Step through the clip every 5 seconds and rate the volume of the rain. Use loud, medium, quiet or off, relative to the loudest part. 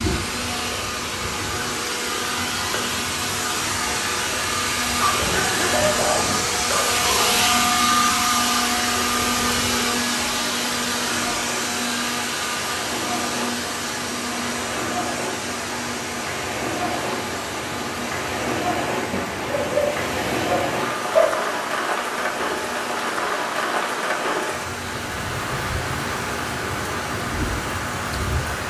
medium, medium, medium, loud, loud, loud.